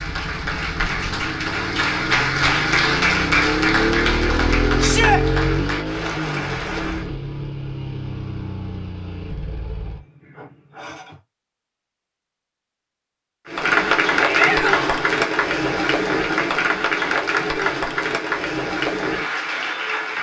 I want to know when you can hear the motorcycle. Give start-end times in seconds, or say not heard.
0.0-11.2.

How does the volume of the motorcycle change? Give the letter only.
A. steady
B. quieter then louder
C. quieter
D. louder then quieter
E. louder
D.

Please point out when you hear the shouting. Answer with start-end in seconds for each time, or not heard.
4.8-5.2, 14.2-15.0.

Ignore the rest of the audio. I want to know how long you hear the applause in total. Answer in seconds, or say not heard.
14 s.